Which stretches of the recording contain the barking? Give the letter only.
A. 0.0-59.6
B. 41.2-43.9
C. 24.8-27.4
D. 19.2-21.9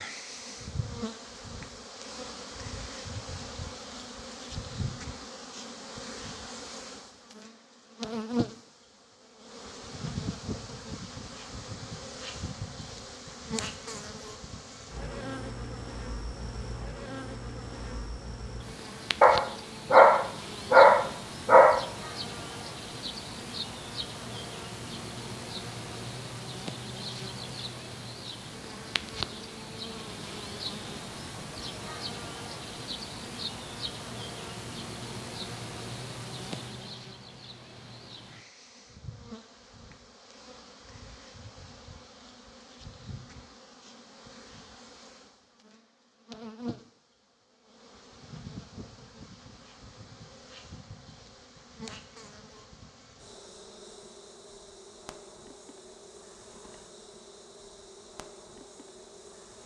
D.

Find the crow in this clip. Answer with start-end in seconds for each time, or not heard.
not heard.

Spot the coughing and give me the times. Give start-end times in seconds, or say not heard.
not heard.